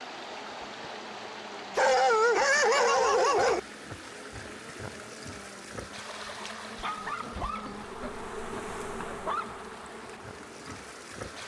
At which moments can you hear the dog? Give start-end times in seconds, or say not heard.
1.8-3.6, 6.8-9.7.